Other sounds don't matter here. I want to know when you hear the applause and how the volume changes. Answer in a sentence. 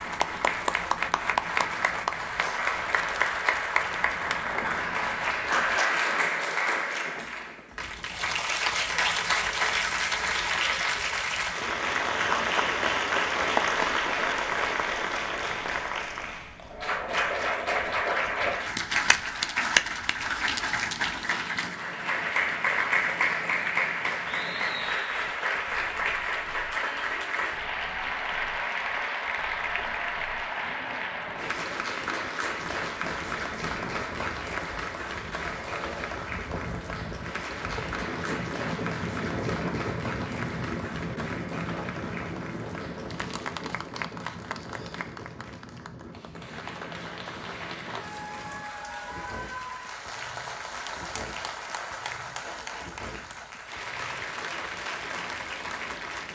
The applause can be heard from 0.0 to 56.3 s, getting quieter.